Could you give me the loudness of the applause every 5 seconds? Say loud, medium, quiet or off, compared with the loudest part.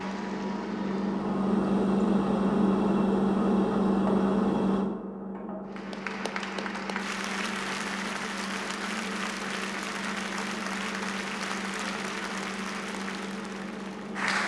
medium, loud, loud.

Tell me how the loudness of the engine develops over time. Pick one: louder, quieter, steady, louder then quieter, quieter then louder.
quieter.